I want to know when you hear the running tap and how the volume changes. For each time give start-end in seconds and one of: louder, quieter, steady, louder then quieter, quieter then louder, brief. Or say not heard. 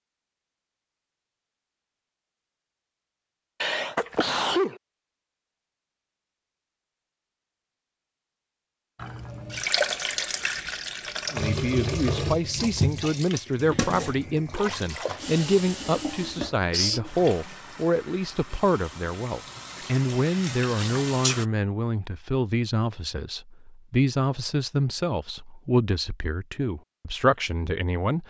8.9-21.4 quieter.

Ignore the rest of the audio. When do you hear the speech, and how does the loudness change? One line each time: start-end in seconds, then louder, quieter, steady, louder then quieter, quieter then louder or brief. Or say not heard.
11.3-28.2 steady.